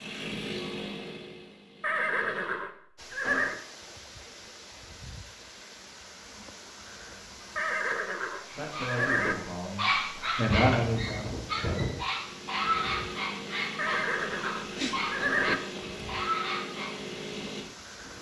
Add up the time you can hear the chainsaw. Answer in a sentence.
You can hear the chainsaw for 9 seconds altogether.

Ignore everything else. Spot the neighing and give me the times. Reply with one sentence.
You can hear the neighing from 1.8 to 3.6 s, from 7.5 to 9.3 s and from 13.8 to 15.6 s.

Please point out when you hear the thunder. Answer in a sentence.
The thunder can be heard from 10.5 to 12.1 s.